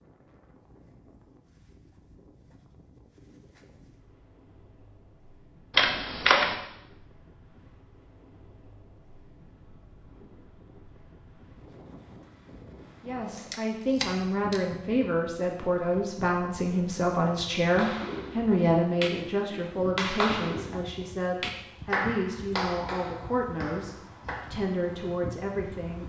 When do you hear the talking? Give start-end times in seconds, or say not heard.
13.0-26.0.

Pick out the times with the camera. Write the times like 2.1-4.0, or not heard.
5.7-6.5, 13.3-14.6.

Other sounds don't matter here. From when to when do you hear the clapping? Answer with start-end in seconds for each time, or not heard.
17.6-24.5.